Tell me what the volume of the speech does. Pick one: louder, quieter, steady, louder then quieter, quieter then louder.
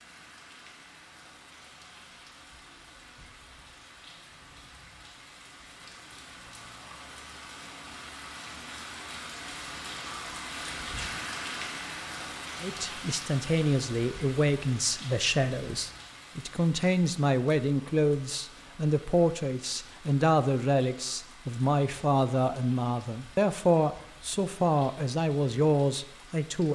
steady.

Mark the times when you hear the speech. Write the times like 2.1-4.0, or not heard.
12.6-26.6.